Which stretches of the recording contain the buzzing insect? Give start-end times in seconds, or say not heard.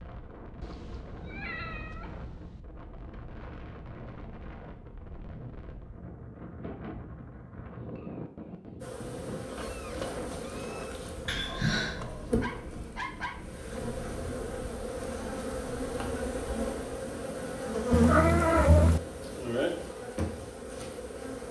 8.8-21.4.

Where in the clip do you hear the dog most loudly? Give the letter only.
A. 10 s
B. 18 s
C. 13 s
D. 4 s
C.